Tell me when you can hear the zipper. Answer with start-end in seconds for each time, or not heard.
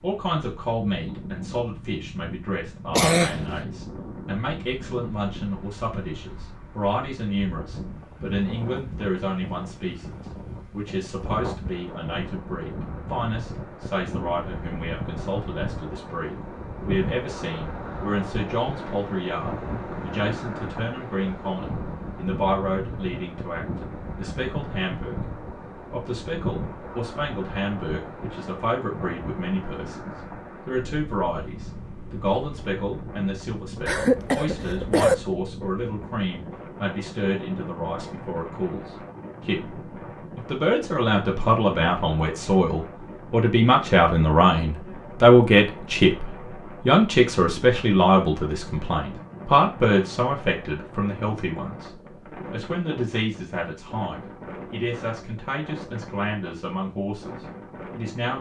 not heard.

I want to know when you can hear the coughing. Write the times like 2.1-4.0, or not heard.
2.9-3.6, 33.9-35.1.